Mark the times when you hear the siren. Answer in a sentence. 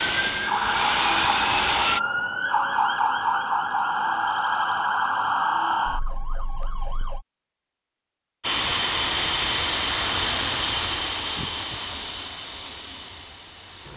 You can hear the siren from 0.0 to 7.2 s.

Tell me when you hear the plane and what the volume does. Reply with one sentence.
The plane can be heard briefly from 0.0 to 2.0 s; and from 8.4 to 13.9 s, getting quieter.